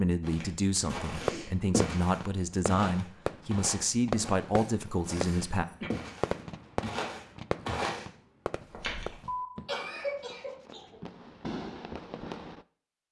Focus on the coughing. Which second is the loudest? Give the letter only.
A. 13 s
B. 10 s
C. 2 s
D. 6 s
B.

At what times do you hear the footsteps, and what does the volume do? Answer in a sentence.
You can hear the footsteps from 0.2 to 9.3 s, getting quieter then louder.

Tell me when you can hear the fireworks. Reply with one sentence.
The fireworks can be heard from 1.1 to 12.6 s.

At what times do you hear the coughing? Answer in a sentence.
You can hear the coughing from 1.0 to 1.6 s, from 4.5 to 5.9 s and from 9.2 to 11.0 s.